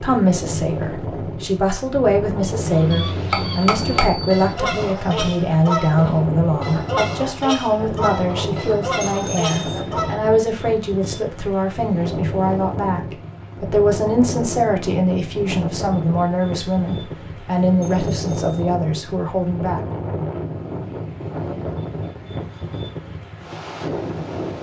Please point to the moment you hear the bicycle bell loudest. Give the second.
4 s.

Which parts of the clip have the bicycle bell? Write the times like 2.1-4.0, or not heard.
3.3-4.3, 9.0-9.8, 17.8-18.6.